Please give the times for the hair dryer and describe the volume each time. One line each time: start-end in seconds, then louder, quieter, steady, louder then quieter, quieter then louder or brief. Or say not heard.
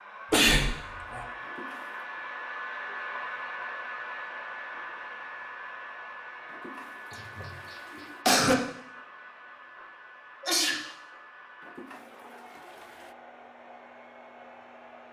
0.0-15.0 quieter.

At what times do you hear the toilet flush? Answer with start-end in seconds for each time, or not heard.
1.4-2.1, 6.5-8.2, 11.6-13.2.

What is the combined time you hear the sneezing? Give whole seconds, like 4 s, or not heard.
3 s.